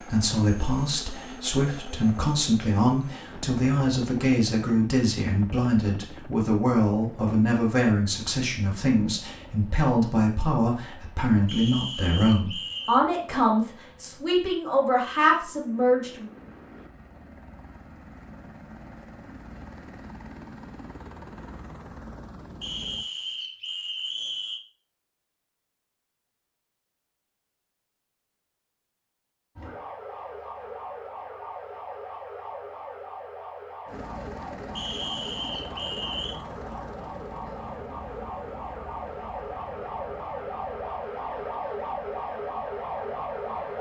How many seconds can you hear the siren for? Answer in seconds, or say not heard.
14 s.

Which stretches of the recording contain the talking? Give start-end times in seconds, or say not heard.
0.0-16.2.